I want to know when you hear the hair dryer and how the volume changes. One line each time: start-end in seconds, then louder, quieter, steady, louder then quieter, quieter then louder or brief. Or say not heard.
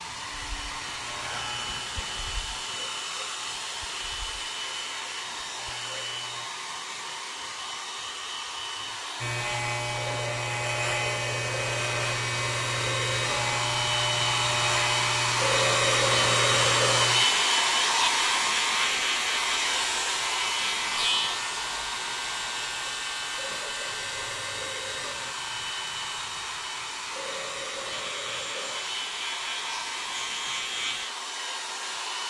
0.0-32.2 louder then quieter.